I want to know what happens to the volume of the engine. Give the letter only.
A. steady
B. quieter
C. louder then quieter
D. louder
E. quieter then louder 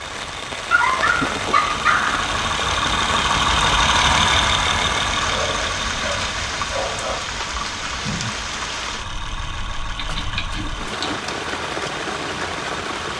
C.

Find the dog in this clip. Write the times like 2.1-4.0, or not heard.
0.7-2.2, 5.2-7.2, 9.9-11.3.